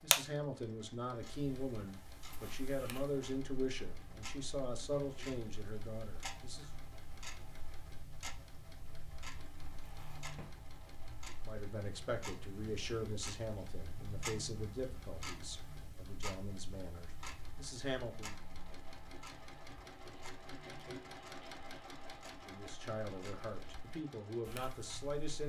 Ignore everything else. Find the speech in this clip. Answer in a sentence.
The speech can be heard from 0.0 to 6.7 s, from 11.4 to 18.4 s and from 22.4 to 25.4 s.